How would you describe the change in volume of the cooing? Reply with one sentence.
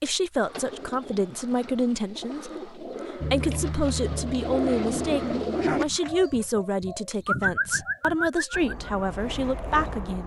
The volume of the cooing goes up.